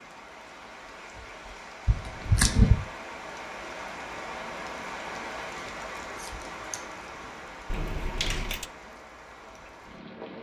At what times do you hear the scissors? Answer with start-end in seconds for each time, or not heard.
1.9-2.8, 5.5-7.3.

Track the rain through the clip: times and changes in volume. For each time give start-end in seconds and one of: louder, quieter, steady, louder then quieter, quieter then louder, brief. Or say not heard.
0.0-10.3 louder then quieter.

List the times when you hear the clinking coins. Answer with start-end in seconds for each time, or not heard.
7.7-8.7.